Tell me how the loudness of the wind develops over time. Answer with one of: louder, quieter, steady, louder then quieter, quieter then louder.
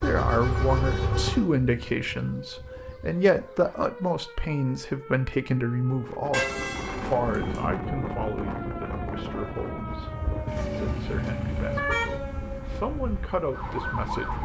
quieter.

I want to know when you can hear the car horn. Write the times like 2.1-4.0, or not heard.
0.0-1.4, 6.3-7.7, 10.4-12.2.